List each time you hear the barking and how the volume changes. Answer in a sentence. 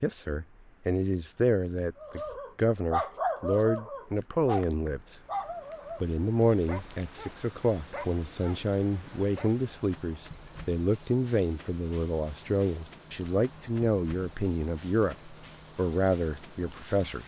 You can hear the barking from 2.0 to 9.5 s, getting quieter.